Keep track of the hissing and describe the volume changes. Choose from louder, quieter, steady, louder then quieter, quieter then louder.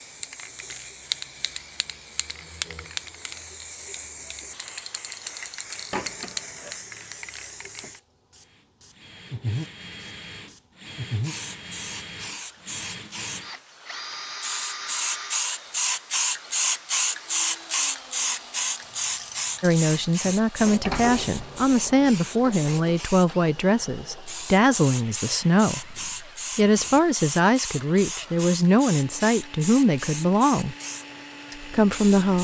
louder then quieter.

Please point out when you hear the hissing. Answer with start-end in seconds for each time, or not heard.
0.0-32.4.